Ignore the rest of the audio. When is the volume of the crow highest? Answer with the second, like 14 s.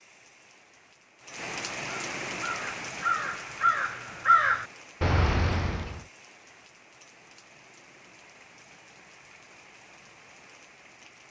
4 s.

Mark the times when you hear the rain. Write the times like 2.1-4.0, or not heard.
0.0-11.2.